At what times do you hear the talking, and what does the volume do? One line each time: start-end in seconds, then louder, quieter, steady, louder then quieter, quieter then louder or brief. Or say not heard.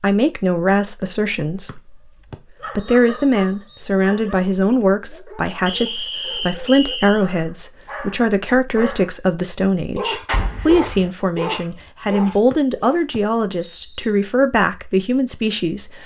0.0-1.9 brief
2.8-16.0 steady.